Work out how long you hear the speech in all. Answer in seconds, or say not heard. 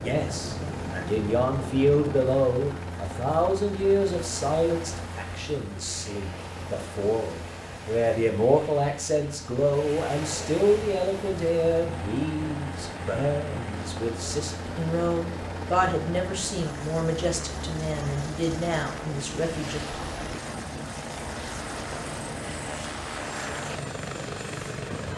20 s.